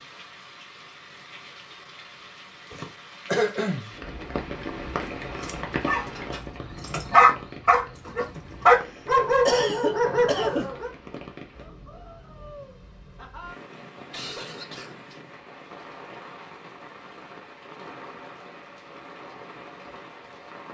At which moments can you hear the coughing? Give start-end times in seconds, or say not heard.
2.7-3.9, 9.4-10.7, 14.1-15.2.